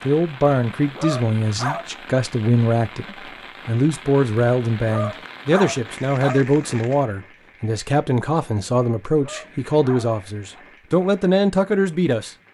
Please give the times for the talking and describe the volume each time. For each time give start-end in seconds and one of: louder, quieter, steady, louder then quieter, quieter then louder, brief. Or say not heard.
0.0-12.3 steady.